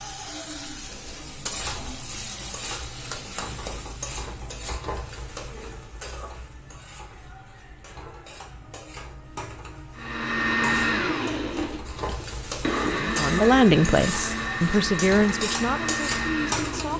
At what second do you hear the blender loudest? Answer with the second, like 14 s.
11 s.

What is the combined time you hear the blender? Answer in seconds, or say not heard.
7 s.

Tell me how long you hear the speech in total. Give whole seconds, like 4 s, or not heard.
4 s.